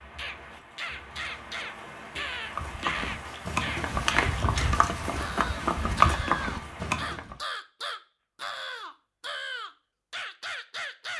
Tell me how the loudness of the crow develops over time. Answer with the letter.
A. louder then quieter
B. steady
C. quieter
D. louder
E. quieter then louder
B.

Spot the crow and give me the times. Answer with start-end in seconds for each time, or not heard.
0.1-11.1.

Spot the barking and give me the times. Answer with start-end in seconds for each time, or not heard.
not heard.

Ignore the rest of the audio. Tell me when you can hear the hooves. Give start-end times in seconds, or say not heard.
2.5-7.3.